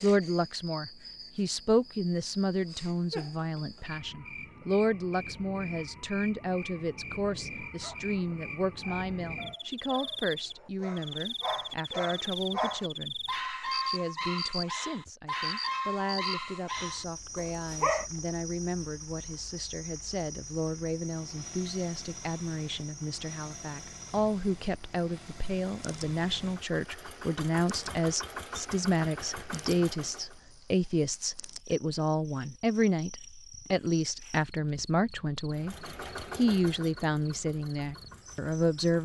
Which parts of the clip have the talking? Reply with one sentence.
You can hear the talking from 0.0 to 35.8 s and from 36.4 to 38.9 s.